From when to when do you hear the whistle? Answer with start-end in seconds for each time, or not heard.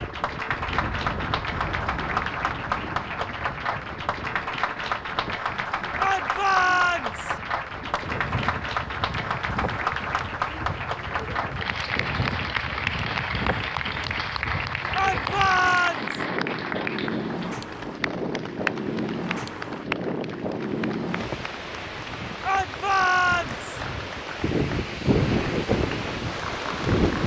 not heard.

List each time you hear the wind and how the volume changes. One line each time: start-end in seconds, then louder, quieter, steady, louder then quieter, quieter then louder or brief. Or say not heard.
0.0-27.2 louder.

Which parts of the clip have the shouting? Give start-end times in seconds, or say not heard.
6.0-7.3, 14.9-16.1, 22.4-23.6.